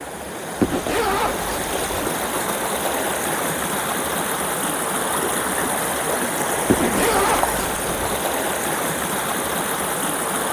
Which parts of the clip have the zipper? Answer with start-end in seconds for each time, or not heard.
0.6-2.1, 6.7-8.2.